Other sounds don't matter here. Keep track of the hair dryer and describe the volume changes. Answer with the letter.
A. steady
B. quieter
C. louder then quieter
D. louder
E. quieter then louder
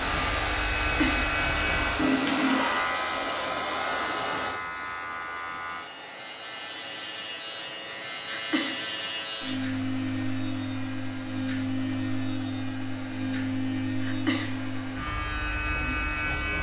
B.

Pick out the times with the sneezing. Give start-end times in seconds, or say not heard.
0.8-1.3, 8.2-8.8, 14.0-14.6.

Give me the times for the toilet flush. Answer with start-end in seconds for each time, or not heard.
1.9-2.8.